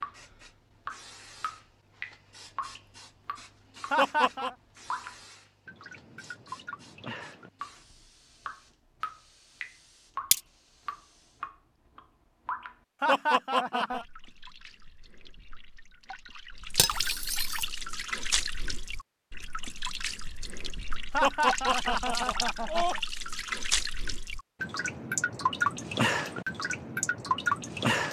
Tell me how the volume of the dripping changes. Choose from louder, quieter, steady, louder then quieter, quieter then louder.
louder.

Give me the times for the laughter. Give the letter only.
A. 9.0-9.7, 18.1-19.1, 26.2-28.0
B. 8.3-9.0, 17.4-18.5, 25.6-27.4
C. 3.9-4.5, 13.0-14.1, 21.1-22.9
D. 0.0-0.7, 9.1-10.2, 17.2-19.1
C.